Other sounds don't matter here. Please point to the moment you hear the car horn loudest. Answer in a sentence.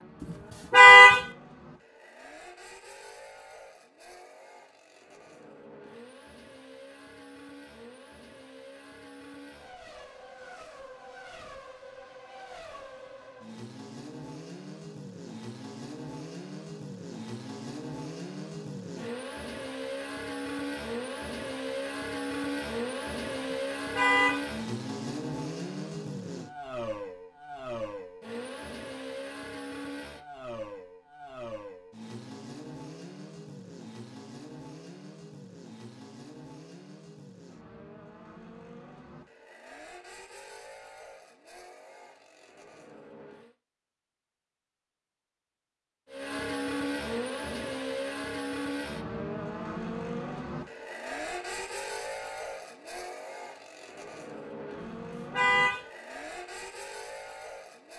The volume of the car horn peaks at 1 second.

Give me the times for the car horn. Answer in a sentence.
The car horn can be heard from 0.7 to 1.2 s, from 23.5 to 24.4 s and from 55.3 to 55.9 s.